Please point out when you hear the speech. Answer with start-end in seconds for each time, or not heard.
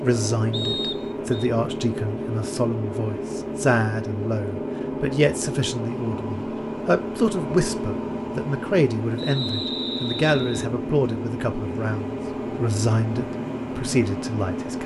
0.0-14.8.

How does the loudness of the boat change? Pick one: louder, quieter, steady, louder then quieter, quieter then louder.
steady.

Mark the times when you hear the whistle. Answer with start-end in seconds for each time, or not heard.
0.5-1.5, 9.2-10.7.